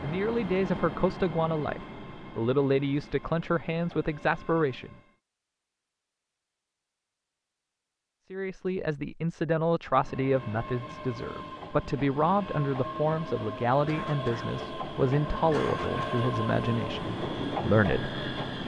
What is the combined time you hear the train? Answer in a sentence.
The train can be heard for 14 seconds in total.